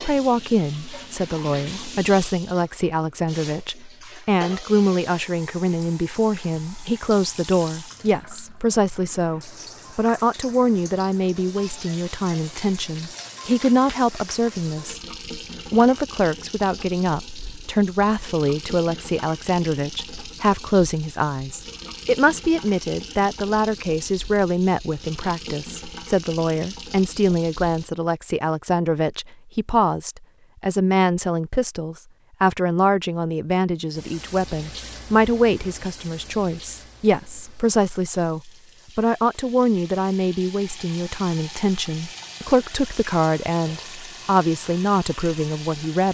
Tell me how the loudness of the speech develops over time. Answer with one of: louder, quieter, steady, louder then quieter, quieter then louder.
steady.